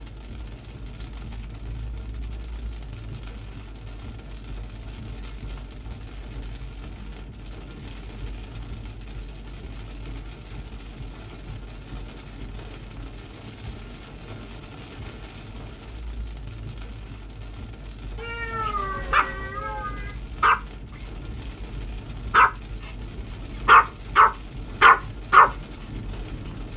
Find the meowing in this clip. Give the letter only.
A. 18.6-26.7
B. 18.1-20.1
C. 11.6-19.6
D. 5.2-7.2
B.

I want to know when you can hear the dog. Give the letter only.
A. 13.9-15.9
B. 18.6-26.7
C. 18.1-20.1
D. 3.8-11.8
B.